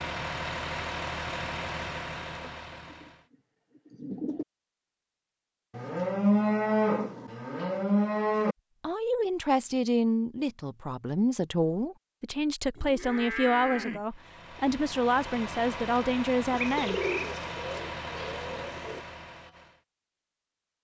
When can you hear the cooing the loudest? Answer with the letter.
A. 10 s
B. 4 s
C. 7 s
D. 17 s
D.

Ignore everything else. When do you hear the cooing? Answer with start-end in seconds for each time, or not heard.
2.4-4.5, 16.5-19.1.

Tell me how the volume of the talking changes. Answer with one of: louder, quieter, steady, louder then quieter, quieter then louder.
steady.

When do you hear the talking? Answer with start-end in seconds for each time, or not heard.
8.8-17.0.